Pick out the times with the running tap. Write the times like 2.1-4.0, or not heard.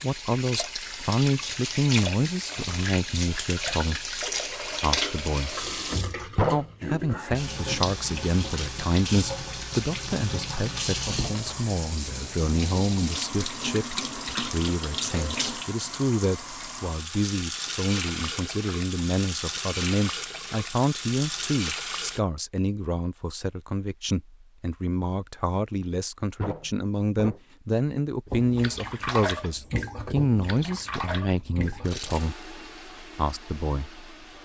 0.0-22.2, 28.2-34.4.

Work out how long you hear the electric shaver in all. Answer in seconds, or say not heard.
not heard.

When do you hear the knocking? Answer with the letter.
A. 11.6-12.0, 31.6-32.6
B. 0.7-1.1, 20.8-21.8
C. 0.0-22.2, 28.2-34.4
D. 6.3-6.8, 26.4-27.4
D.